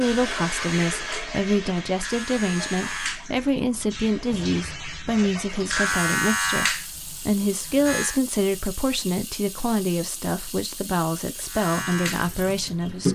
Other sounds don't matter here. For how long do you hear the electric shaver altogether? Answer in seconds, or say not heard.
10 s.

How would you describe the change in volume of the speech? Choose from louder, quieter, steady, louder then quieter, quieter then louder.
steady.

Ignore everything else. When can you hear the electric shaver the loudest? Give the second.
6 s.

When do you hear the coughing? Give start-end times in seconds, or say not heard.
not heard.